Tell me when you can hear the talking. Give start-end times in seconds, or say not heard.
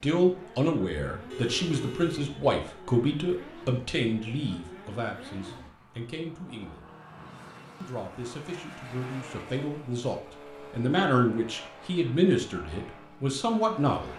0.0-6.9, 7.8-14.1.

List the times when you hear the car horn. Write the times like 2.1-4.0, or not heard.
1.3-2.4.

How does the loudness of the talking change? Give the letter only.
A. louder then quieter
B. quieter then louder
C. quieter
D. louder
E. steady
B.